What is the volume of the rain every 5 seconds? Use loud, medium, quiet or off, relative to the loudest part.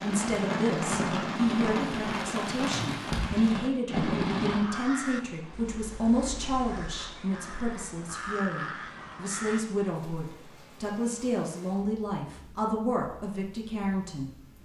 loud, quiet, quiet.